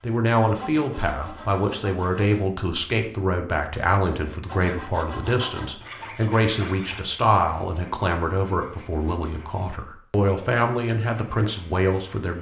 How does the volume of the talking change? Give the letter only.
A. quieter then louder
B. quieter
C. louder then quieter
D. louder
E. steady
E.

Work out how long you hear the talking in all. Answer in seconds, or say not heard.
12 s.